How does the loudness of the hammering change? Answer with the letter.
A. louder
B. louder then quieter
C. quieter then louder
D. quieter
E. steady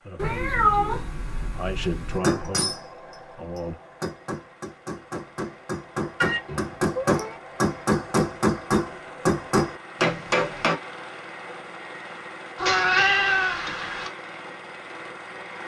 A.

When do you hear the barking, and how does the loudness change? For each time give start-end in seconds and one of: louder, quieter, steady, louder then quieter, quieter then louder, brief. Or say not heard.
not heard.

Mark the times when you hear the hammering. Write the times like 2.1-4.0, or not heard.
2.1-10.8.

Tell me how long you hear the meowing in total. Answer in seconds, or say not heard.
5 s.